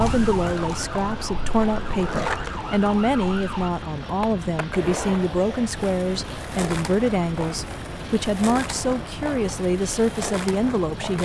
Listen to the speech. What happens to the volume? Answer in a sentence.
The volume of the speech stays about the same.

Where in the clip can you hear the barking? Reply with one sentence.
You can't hear the barking here.